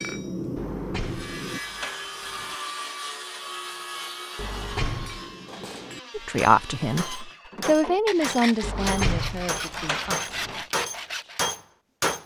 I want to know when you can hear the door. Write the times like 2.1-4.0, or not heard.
0.6-2.5, 4.3-5.2, 8.6-10.7.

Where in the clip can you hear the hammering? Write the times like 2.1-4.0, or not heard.
0.0-1.6, 4.8-12.2.